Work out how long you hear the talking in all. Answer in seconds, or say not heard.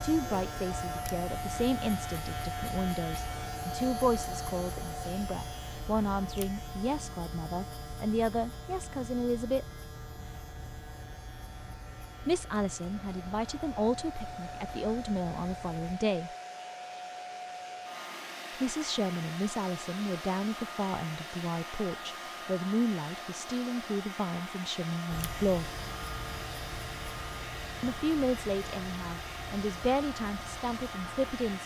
25 s.